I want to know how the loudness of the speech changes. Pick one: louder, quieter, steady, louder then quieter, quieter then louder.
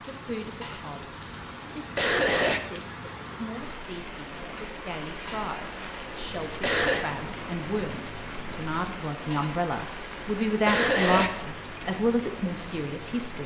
louder.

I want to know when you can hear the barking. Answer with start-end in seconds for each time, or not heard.
not heard.